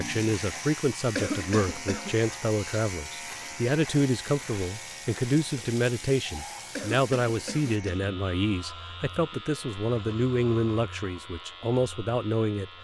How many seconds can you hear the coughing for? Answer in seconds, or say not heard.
2 s.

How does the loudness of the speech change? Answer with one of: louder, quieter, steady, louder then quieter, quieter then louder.
steady.